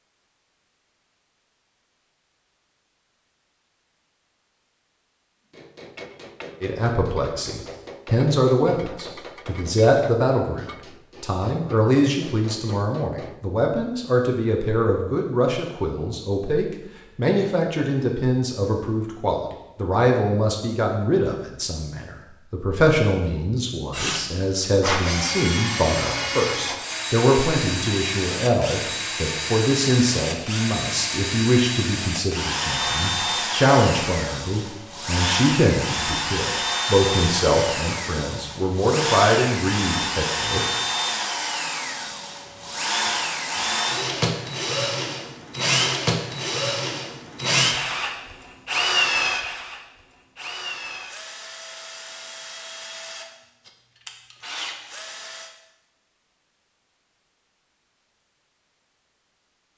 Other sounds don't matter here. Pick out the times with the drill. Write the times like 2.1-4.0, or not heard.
23.9-55.5.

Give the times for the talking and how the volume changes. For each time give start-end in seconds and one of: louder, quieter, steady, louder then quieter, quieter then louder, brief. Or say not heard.
6.6-40.6 steady.